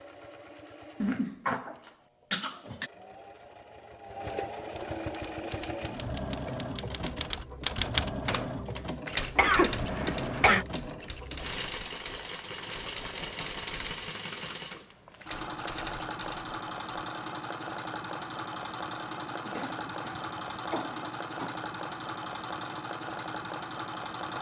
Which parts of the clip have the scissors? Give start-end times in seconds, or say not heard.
not heard.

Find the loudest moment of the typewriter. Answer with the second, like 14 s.
8 s.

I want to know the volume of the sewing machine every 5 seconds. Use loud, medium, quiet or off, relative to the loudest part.
medium, loud, loud, loud, loud.